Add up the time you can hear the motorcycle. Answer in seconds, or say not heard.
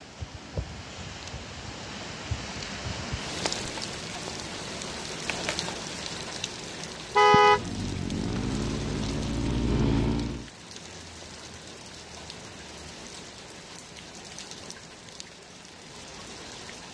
3 s.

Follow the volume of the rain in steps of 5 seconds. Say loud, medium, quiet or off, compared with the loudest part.
loud, loud, medium, medium.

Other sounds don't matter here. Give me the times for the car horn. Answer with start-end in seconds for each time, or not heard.
7.2-7.7.